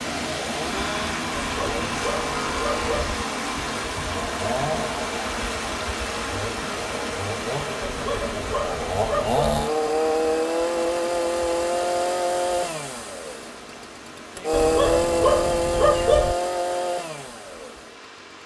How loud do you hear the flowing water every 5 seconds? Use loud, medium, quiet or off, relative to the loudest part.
loud, loud, medium, quiet.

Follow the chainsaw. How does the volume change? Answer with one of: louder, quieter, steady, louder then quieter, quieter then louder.
louder.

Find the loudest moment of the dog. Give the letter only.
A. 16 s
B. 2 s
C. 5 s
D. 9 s
A.